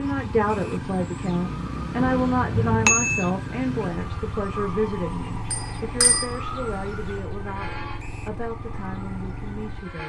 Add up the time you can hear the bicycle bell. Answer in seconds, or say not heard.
2 s.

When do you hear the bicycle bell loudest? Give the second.
3 s.